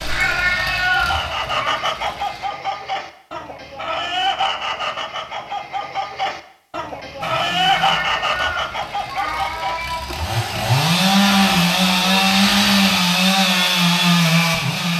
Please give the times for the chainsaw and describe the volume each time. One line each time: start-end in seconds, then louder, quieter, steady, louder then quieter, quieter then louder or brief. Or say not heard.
0.0-2.5 brief
7.2-14.9 louder.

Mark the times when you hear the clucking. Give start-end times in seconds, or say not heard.
0.5-12.2.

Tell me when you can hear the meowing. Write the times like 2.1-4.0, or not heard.
0.1-1.9, 7.8-10.2.